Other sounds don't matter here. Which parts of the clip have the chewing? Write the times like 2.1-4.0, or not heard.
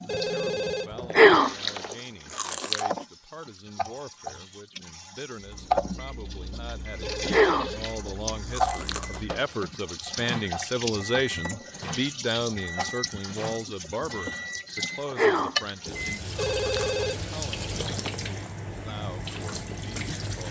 1.1-2.9, 7.2-9.2, 15.1-17.1.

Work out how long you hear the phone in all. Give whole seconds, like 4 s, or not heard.
5 s.